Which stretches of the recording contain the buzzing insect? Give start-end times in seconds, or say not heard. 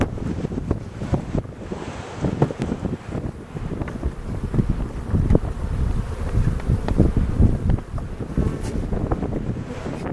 0.0-10.0.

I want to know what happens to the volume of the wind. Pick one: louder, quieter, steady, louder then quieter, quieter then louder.
quieter then louder.